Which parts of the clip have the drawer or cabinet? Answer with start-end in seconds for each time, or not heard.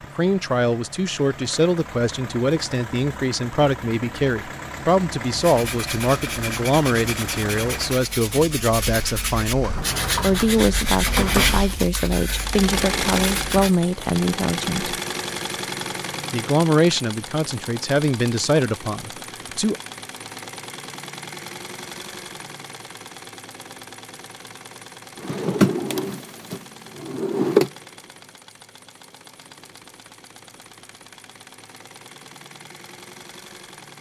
9.6-11.6, 25.1-27.7.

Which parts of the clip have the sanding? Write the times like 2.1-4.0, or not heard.
5.3-13.8.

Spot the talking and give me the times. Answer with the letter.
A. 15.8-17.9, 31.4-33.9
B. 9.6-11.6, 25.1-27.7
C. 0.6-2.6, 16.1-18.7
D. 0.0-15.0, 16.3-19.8
D.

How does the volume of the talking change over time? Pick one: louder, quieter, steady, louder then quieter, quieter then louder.
steady.